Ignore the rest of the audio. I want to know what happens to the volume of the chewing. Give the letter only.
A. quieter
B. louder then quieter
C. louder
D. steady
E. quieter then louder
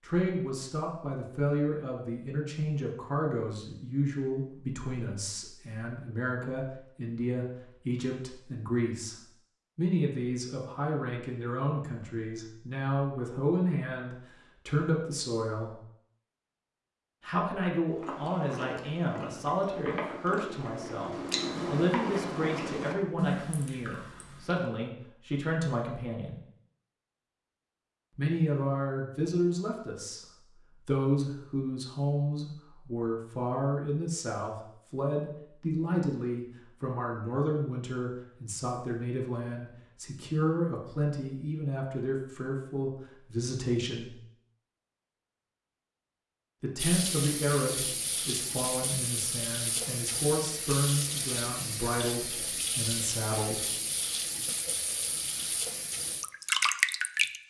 C.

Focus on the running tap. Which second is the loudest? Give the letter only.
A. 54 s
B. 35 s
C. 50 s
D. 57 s
D.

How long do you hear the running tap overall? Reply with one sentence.
You can hear the running tap for 11 seconds altogether.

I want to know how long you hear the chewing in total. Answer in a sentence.
You can hear the chewing for 7 seconds altogether.